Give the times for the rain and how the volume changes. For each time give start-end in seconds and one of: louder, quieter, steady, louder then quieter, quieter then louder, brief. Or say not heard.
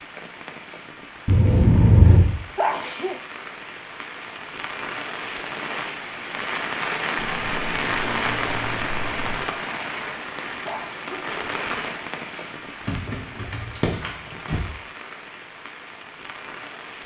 0.0-17.0 louder then quieter.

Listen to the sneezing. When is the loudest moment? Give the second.
3 s.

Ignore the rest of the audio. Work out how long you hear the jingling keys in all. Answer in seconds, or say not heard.
5 s.